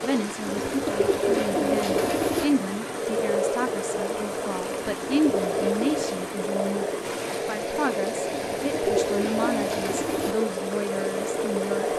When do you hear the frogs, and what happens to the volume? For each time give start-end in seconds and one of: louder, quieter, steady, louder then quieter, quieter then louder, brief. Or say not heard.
0.0-11.9 steady.